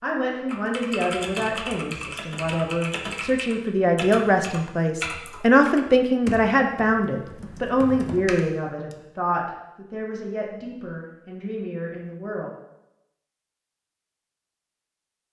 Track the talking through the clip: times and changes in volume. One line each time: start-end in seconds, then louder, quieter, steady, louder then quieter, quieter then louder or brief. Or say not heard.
0.0-12.5 louder then quieter.